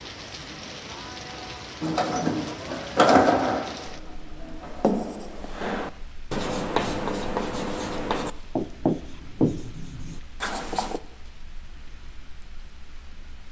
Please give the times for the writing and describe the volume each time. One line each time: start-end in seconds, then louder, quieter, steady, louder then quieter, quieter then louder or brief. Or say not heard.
4.6-11.0 louder then quieter.